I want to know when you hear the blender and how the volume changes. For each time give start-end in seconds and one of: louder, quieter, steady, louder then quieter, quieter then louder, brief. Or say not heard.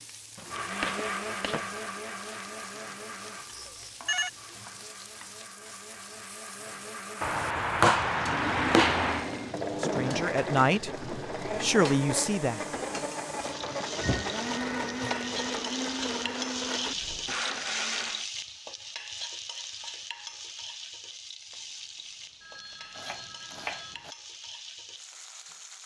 0.5-18.3 quieter then louder.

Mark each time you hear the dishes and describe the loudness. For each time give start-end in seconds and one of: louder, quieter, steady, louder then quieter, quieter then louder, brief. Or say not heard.
not heard.